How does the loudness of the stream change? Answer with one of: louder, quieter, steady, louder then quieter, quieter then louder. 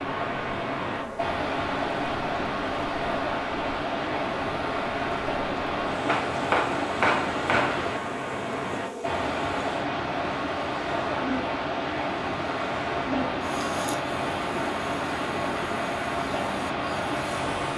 steady.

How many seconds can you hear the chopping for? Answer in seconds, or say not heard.
2 s.